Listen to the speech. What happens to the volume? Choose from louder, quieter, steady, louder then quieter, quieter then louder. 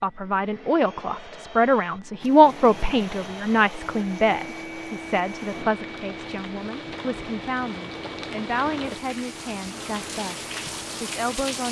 quieter.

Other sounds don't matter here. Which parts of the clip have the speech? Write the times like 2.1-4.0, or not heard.
0.0-11.6.